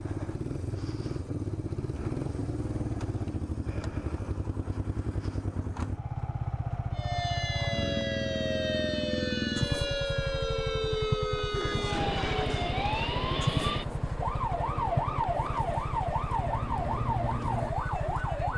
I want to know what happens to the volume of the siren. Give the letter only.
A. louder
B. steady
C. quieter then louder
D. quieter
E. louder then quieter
B.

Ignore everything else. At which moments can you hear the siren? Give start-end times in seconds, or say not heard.
6.9-18.5.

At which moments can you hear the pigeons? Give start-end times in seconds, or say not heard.
11.5-13.1.